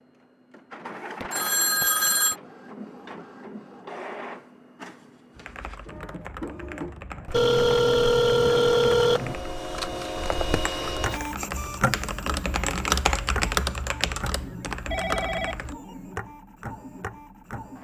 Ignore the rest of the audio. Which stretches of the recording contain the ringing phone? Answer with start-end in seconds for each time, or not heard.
1.2-2.4, 7.3-9.3, 14.9-15.8.